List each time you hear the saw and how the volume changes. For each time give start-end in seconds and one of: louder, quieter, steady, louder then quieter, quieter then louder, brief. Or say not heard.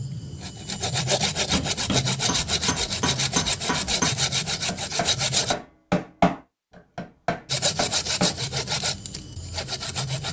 0.0-5.5 steady
7.5-10.2 brief.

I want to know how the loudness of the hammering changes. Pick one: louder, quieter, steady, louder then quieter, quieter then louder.
louder then quieter.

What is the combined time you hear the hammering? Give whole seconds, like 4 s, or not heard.
7 s.